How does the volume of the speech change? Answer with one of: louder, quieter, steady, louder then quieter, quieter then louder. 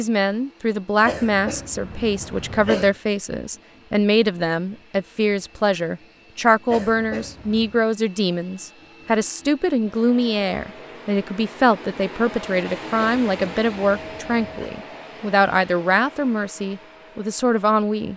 steady.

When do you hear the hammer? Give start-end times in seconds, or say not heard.
not heard.